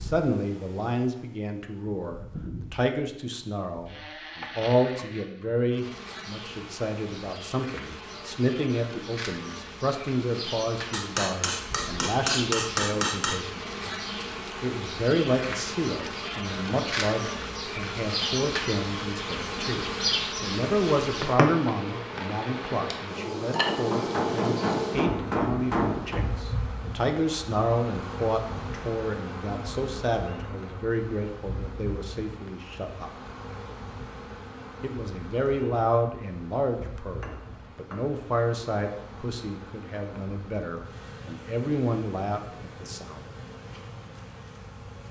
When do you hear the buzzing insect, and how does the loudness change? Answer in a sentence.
You can hear the buzzing insect from 0.0 to 45.0 s, getting louder then quieter.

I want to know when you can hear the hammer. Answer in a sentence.
The hammer can be heard from 10.9 to 13.4 s, from 23.6 to 26.2 s and from 37.2 to 38.0 s.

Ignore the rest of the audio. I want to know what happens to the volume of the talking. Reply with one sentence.
The loudness of the talking stays about the same.